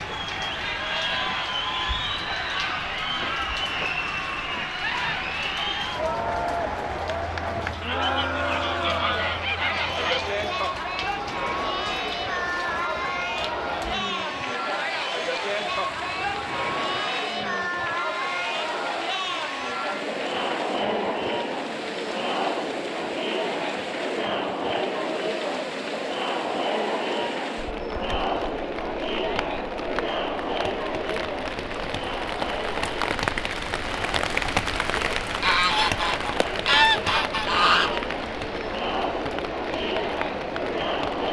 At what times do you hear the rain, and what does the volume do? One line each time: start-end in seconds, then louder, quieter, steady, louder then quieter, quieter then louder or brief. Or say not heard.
0.0-41.2 louder.